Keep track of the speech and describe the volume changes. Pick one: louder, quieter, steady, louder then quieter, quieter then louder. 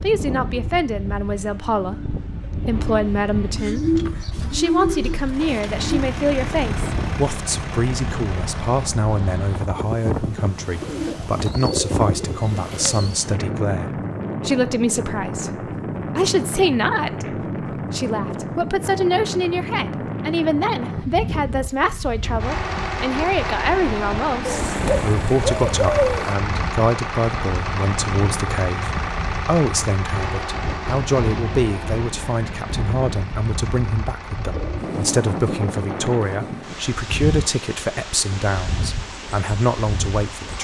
steady.